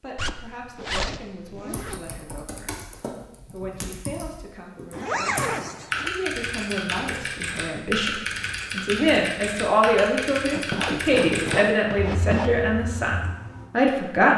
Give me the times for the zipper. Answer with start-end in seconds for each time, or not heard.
0.1-2.0, 4.9-6.1, 10.5-12.5.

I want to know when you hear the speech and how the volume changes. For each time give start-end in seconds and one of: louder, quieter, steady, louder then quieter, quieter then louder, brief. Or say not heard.
0.0-14.3 louder.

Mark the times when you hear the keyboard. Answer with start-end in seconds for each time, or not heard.
1.7-13.7.